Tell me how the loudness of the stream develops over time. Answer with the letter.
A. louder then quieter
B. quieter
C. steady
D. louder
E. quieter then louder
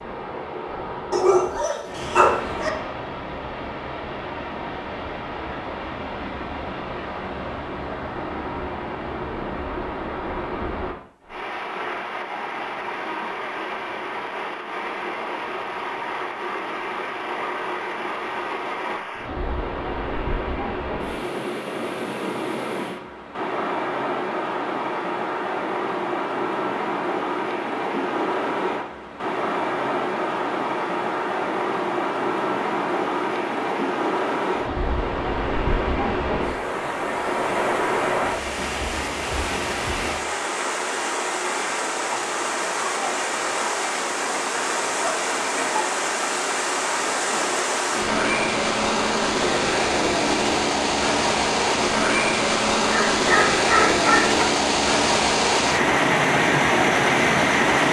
D.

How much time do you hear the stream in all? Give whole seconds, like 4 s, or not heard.
58 s.